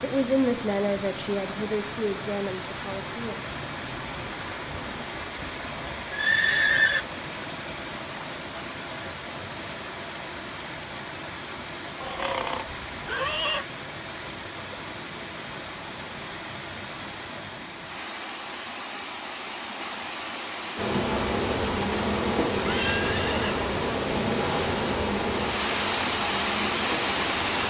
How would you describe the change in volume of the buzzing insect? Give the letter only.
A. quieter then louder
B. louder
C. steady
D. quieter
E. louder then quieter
D.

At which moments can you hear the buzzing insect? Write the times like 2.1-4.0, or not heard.
20.8-27.6.